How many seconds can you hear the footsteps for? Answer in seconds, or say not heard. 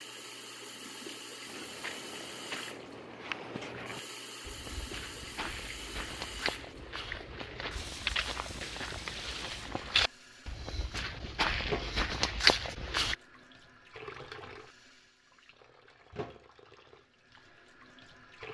12 s.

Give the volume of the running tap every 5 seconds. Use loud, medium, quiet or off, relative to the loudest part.
loud, loud, loud, medium.